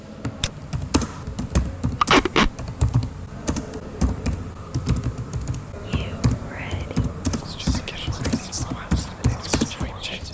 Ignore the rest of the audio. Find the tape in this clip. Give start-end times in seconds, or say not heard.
2.0-2.5.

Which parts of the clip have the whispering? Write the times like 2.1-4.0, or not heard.
5.8-10.3.